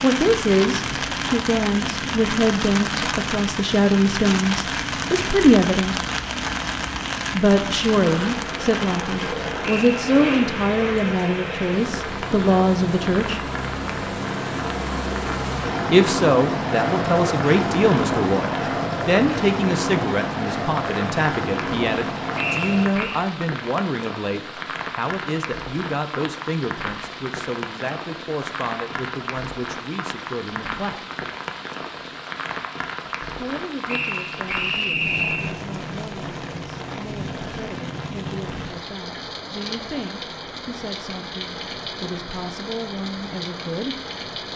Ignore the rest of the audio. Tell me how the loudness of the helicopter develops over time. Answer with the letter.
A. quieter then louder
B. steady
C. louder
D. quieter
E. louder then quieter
C.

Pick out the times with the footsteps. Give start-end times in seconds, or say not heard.
not heard.